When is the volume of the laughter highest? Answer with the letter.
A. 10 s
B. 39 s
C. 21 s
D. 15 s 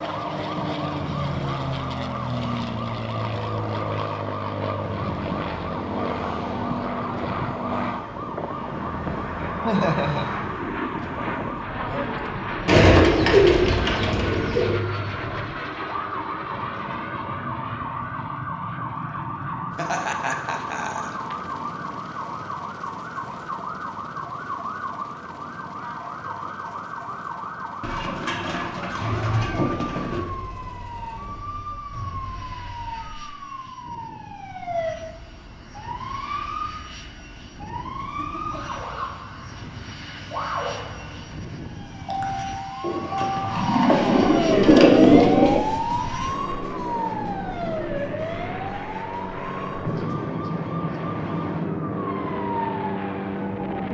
A.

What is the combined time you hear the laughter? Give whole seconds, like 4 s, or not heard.
3 s.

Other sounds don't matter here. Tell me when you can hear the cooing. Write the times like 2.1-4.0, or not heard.
12.7-14.8, 27.8-30.2, 42.8-45.6.